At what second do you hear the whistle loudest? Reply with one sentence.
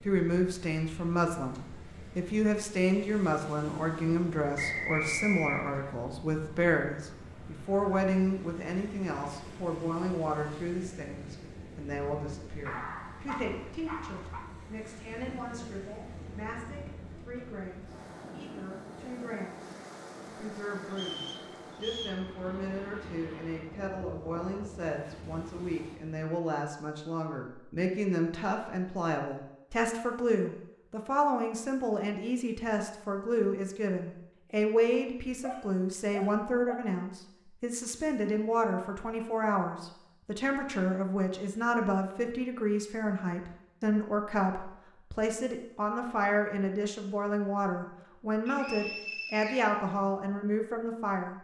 The volume of the whistle peaks at 5 seconds.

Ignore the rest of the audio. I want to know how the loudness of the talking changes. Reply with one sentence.
The loudness of the talking goes down, then up.